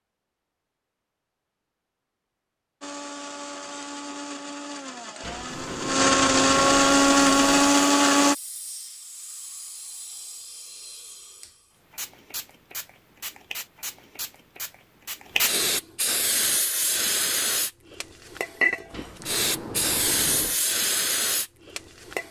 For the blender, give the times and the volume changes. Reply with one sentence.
You can hear the blender from 2.8 to 8.3 s, getting louder.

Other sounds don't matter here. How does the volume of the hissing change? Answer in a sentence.
The loudness of the hissing goes up.